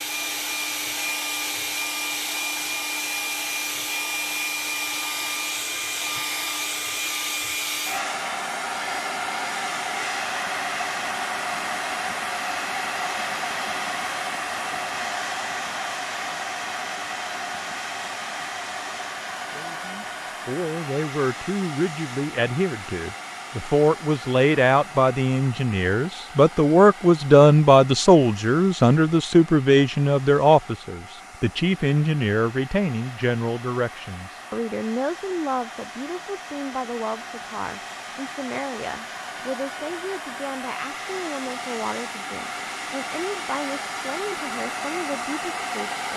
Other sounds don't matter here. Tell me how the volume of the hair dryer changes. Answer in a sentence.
The volume of the hair dryer goes down, then up.